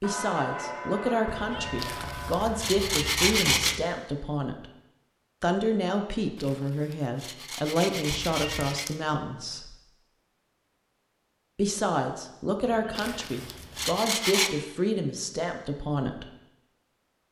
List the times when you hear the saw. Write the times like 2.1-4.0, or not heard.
1.8-3.8, 6.3-8.9, 12.9-14.5.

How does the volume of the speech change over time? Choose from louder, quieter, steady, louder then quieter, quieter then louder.
steady.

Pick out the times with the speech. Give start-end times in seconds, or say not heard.
0.0-4.7, 5.4-9.8, 11.6-16.2.